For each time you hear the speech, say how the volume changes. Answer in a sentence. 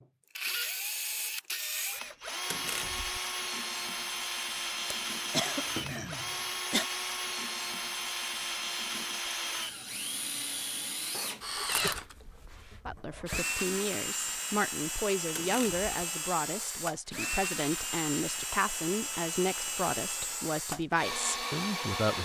You can hear the speech from 12.8 to 22.2 s, at a steady volume.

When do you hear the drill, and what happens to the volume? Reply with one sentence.
The drill can be heard from 0.0 to 22.2 s, at a steady volume.